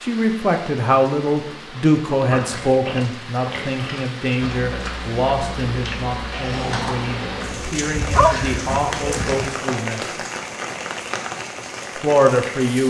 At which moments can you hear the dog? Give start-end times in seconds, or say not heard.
7.9-9.4.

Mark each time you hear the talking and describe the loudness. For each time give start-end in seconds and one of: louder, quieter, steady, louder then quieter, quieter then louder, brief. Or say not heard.
0.0-10.2 quieter
11.9-12.8 brief.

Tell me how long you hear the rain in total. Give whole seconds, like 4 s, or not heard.
13 s.